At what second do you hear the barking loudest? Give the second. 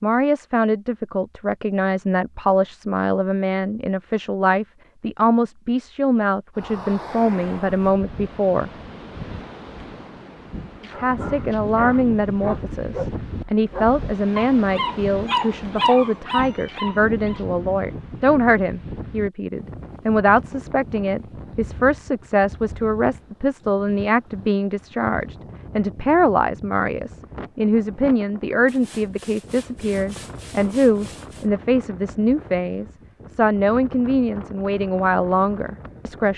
16 s.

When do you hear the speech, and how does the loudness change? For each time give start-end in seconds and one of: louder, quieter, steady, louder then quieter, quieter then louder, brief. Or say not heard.
0.0-8.7 steady
10.9-36.3 steady.